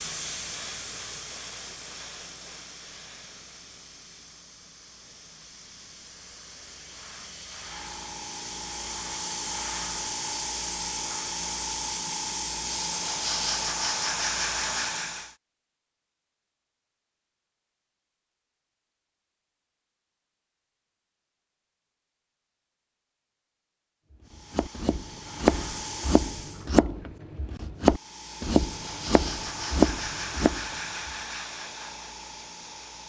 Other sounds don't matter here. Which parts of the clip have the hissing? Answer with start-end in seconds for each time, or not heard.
0.0-15.3, 24.2-26.7, 27.8-33.0.